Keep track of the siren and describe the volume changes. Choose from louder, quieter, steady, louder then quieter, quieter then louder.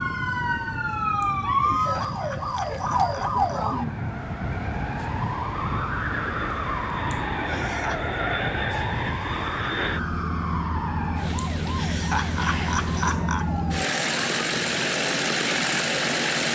quieter.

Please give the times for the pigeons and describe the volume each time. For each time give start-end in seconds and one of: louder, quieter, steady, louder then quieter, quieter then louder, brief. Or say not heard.
not heard.